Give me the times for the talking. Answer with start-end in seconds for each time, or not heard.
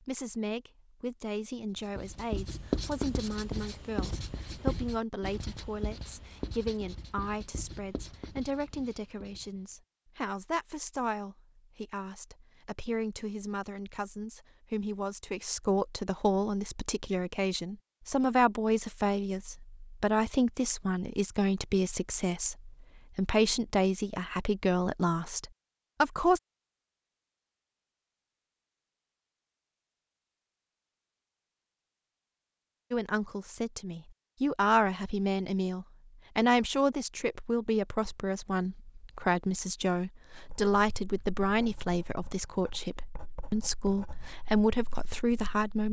0.0-26.4, 32.9-45.8.